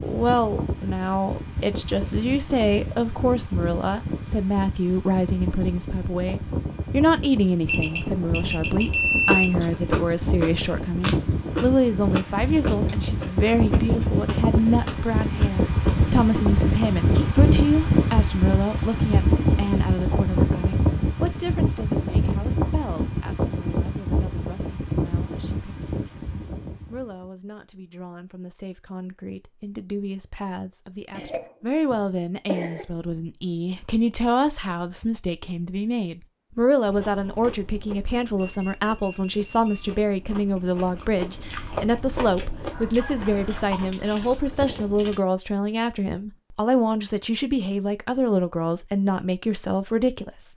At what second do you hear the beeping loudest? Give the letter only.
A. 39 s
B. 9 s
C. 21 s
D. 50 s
B.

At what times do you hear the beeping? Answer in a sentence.
You can hear the beeping from 7.7 to 9.6 s and from 38.4 to 40.0 s.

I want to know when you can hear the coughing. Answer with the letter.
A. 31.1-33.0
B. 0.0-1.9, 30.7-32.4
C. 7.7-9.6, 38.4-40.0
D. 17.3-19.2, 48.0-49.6
A.